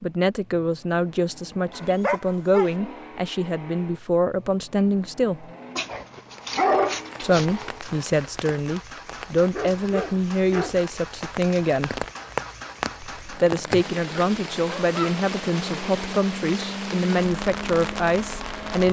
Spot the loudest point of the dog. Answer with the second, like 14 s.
7 s.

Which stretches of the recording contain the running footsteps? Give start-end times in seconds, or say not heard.
not heard.